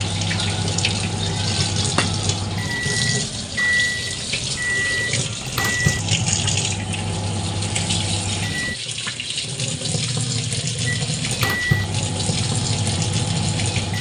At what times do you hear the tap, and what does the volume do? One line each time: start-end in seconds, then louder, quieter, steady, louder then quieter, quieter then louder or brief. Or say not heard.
0.0-13.9 steady.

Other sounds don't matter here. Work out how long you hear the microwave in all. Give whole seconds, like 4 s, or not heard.
12 s.